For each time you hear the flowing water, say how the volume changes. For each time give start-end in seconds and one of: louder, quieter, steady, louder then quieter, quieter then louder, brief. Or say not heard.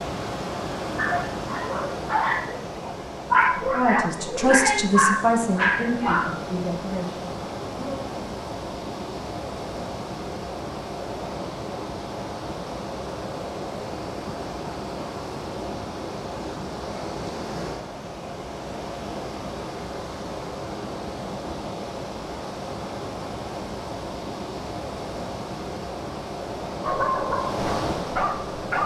0.0-28.8 steady.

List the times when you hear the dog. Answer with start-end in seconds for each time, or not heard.
0.9-6.4, 26.8-28.8.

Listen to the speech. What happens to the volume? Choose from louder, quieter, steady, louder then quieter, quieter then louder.
quieter.